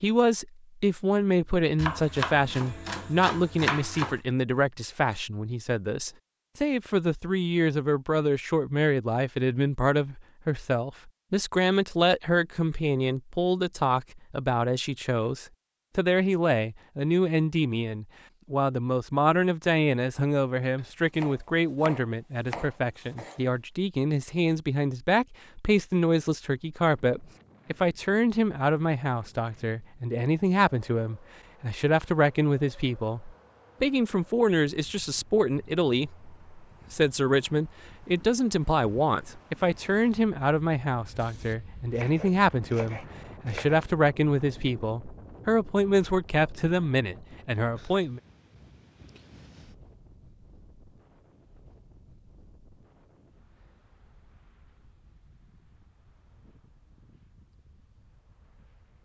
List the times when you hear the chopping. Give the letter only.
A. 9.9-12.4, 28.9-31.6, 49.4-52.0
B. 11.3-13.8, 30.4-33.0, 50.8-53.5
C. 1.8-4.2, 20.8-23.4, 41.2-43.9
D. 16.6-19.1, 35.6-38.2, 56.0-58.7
C.